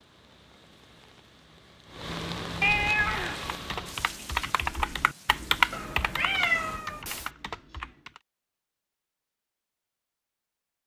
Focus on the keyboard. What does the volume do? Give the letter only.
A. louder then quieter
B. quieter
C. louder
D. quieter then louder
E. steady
A.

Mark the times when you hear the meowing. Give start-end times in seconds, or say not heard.
2.6-3.5, 5.7-7.3.